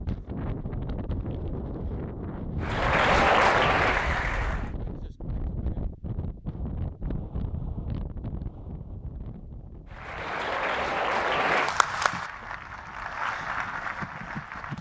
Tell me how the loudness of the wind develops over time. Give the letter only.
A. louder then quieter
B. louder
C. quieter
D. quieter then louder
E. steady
C.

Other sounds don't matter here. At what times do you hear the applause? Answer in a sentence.
The applause can be heard from 2.6 to 4.7 s and from 9.9 to 14.7 s.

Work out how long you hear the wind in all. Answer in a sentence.
The wind can be heard for 15 seconds in total.